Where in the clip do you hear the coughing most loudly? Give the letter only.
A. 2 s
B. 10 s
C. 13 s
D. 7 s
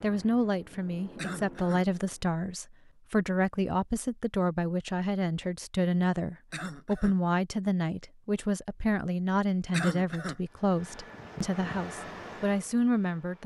B.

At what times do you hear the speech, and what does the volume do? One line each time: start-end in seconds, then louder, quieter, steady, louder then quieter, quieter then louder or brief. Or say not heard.
0.0-13.4 steady.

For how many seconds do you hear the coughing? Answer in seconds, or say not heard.
2 s.